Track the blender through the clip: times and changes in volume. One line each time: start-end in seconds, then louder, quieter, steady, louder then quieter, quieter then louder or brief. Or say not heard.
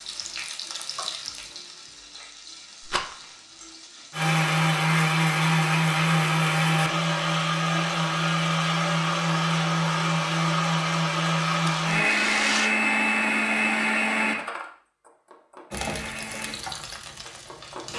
4.1-17.9 quieter.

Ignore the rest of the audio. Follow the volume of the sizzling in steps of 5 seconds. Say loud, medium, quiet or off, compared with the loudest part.
loud, off, off, loud.